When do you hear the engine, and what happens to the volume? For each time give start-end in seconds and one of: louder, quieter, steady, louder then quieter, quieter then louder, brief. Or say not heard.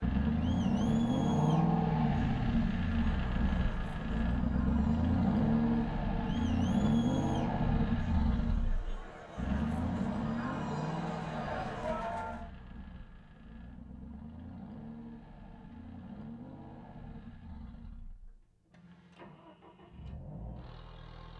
0.0-21.3 quieter.